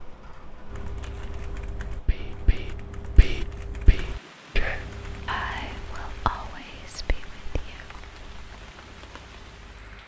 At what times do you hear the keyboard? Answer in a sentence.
You can hear the keyboard from 0.7 to 10.0 s.